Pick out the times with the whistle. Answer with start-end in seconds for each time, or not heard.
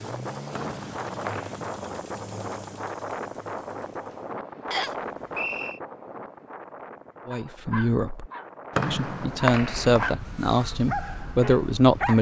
0.6-1.6, 4.7-5.8, 8.8-10.2.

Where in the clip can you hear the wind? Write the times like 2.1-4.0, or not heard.
0.0-12.1.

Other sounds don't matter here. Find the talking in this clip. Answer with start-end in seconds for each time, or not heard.
7.2-8.3, 8.9-12.1.